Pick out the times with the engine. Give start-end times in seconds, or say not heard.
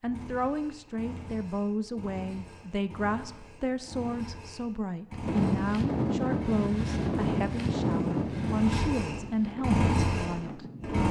0.0-11.0.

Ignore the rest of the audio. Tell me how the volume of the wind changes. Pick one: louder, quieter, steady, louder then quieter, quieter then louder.
quieter.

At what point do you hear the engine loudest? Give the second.
10 s.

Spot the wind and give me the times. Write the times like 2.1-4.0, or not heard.
5.2-11.0.